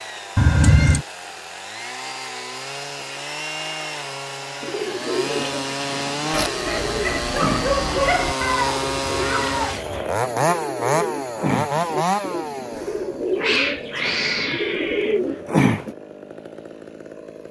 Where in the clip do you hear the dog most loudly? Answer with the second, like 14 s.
8 s.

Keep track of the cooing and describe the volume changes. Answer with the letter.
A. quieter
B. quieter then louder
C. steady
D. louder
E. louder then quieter
D.